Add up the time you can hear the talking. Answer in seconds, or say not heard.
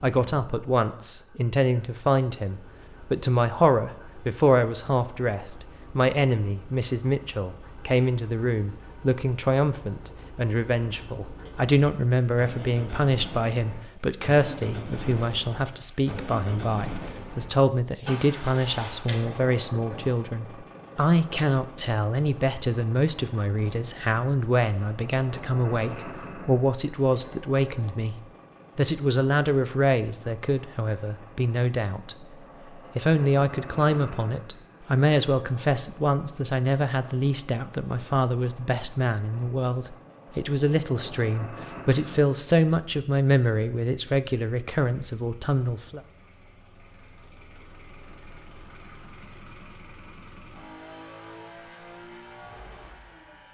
45 s.